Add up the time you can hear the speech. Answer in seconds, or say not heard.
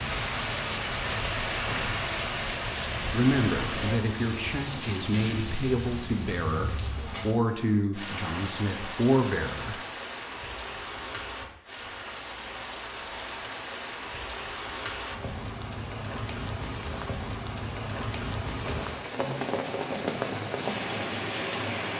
7 s.